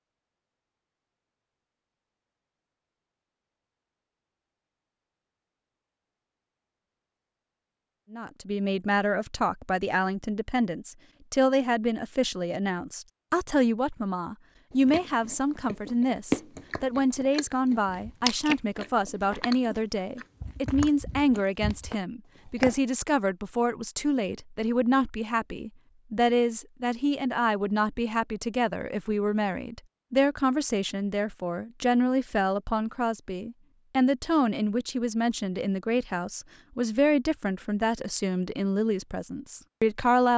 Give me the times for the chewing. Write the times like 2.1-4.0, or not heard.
14.8-22.8.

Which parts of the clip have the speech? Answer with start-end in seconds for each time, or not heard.
8.1-40.3.